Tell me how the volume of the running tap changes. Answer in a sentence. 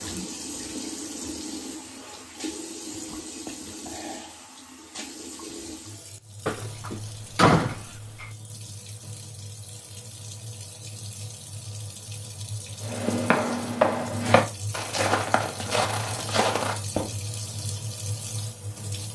The volume of the running tap goes down, then up.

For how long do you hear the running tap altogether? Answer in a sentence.
You can hear the running tap for 19 seconds altogether.